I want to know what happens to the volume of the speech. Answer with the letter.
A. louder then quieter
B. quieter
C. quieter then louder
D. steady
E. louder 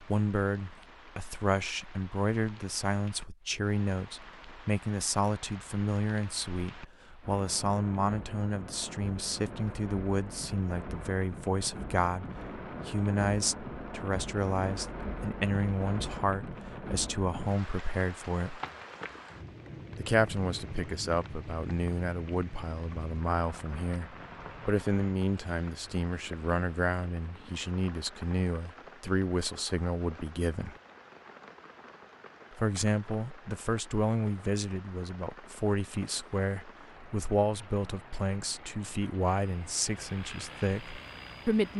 D.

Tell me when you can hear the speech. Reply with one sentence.
The speech can be heard from 0.0 to 18.6 s, from 19.9 to 30.8 s and from 32.5 to 41.7 s.